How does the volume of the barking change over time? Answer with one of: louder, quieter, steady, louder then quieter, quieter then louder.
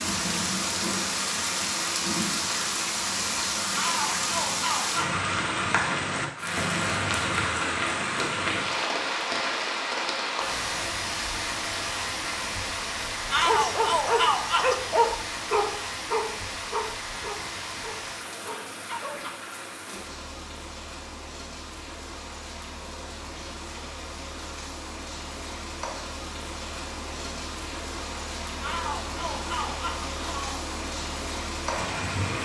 quieter.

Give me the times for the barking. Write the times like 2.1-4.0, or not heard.
13.4-19.3.